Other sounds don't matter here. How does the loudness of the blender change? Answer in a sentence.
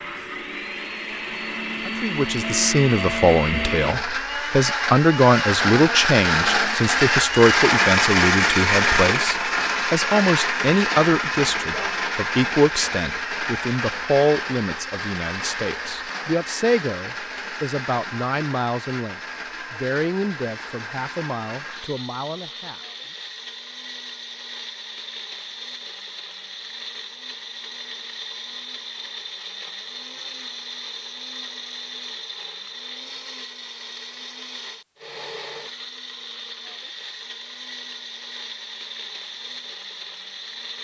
The volume of the blender goes down.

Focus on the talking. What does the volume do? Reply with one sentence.
The loudness of the talking goes down.